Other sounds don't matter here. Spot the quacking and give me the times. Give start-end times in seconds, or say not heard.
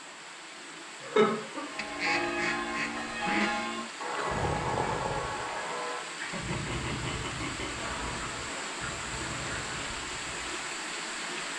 1.8-3.5, 7.7-10.1.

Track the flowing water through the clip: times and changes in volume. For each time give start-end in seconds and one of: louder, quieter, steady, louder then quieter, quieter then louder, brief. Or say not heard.
0.0-11.5 louder.